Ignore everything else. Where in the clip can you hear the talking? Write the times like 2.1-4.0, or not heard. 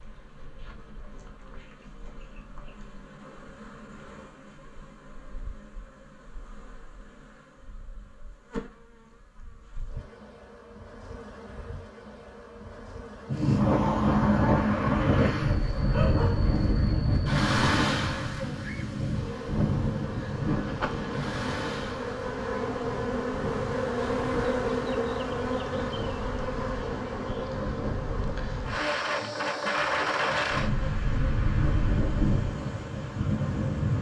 not heard.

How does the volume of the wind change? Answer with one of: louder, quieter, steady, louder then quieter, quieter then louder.
quieter then louder.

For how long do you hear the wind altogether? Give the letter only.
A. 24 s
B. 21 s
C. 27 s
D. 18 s
B.